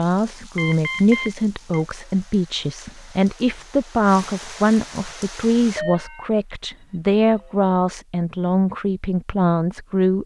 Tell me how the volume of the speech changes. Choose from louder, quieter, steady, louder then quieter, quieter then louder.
steady.